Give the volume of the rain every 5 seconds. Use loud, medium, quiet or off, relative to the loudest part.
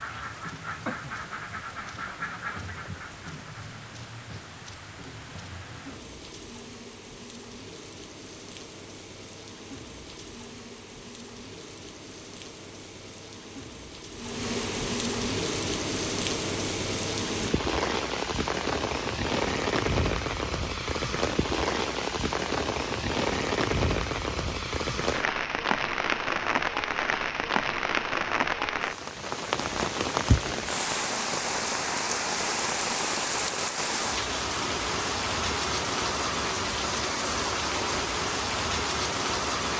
quiet, quiet, medium, loud, loud, loud, loud, loud.